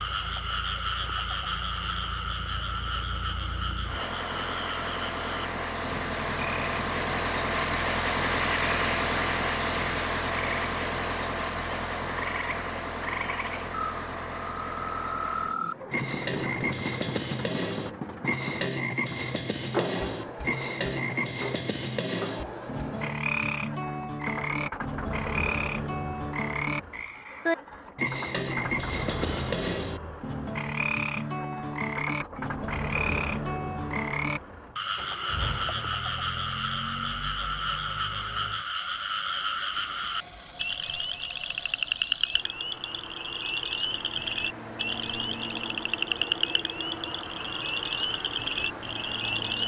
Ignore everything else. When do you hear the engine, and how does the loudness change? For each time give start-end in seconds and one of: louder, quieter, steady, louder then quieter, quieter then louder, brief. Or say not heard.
0.0-49.6 quieter.